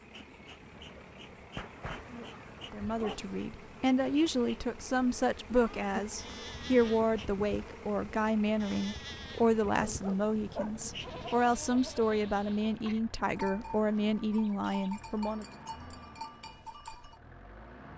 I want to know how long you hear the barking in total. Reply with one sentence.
The barking can be heard for 3 seconds in total.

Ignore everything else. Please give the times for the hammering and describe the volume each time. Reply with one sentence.
The hammering can't be heard in this clip.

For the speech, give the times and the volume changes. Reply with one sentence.
You can hear the speech from 2.7 to 15.4 s, at a steady volume.